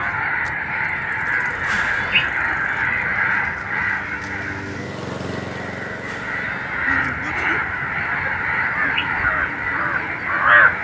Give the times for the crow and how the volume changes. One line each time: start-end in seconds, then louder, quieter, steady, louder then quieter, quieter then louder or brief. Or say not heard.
0.0-10.7 quieter then louder.